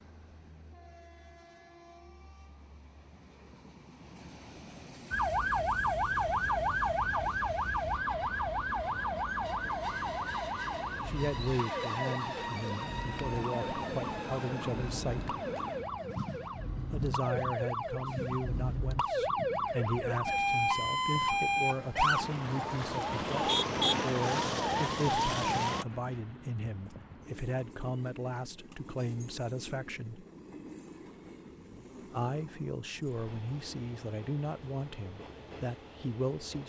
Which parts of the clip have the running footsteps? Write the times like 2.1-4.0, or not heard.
not heard.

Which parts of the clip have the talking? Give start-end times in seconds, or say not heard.
11.1-15.4, 16.9-30.2, 32.1-36.6.